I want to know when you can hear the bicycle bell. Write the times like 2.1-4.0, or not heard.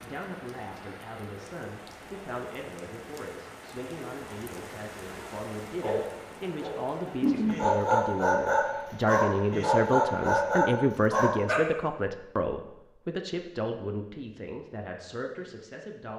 not heard.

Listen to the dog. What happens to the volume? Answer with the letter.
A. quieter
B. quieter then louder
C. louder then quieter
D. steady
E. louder
E.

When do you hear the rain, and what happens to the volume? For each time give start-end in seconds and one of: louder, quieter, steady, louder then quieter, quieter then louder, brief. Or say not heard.
0.0-10.4 louder then quieter.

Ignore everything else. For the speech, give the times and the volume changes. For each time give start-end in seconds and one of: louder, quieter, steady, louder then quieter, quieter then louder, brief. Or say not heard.
0.0-16.1 louder then quieter.